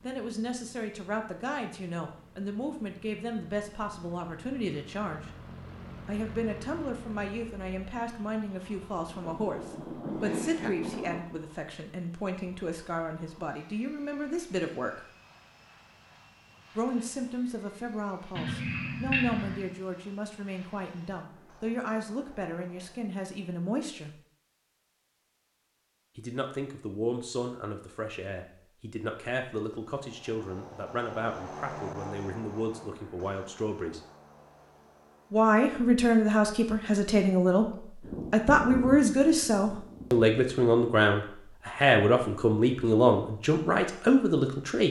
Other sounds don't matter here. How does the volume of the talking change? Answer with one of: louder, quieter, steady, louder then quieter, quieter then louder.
louder.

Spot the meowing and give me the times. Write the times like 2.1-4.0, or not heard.
18.4-19.7.